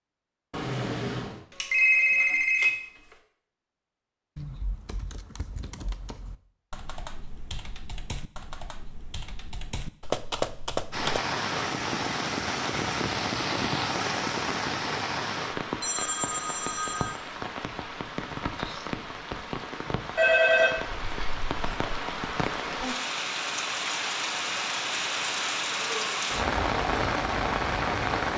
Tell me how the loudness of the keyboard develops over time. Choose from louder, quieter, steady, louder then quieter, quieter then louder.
louder.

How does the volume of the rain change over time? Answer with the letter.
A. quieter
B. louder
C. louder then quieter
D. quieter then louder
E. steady
D.